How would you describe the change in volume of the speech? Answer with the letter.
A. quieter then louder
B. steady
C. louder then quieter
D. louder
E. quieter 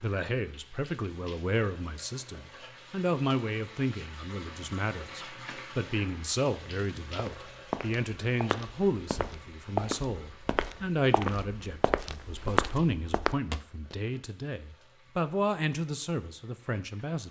B.